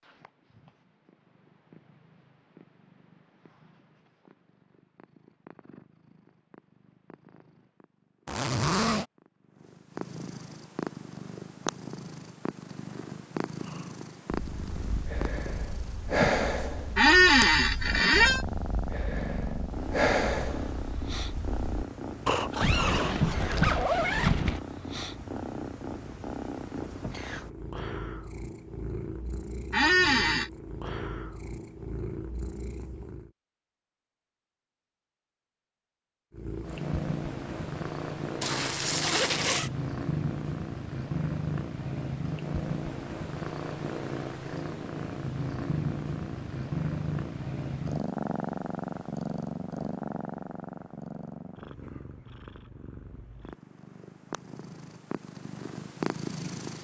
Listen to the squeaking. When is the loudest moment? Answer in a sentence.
The loudest moment of the squeaking is at 17 seconds.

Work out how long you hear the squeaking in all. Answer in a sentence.
You can hear the squeaking for 2 seconds altogether.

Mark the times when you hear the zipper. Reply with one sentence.
You can hear the zipper from 8.2 to 9.1 s, from 22.6 to 24.6 s and from 38.4 to 39.7 s.